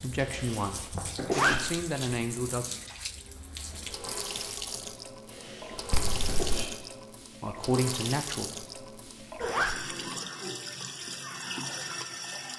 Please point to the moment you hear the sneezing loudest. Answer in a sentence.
The volume of the sneezing peaks at 1 second.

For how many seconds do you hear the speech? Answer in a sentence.
The speech can be heard for 4 seconds in total.